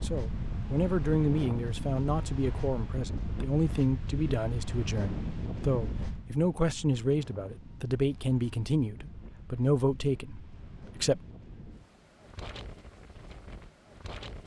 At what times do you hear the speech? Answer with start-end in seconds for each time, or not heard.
0.0-11.2.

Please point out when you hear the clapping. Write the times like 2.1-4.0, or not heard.
not heard.